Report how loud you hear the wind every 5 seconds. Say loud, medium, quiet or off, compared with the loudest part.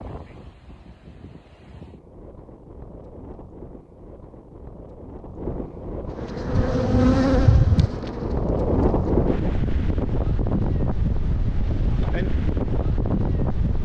quiet, loud, loud.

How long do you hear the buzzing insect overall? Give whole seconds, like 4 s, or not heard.
3 s.